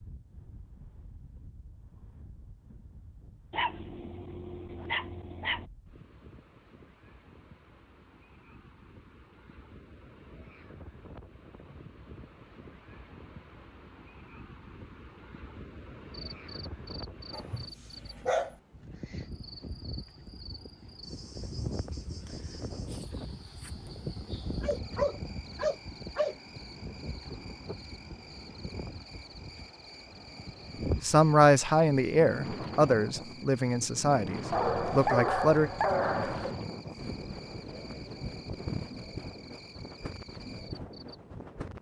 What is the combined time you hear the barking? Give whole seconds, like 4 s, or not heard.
7 s.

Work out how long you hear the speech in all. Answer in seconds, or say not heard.
5 s.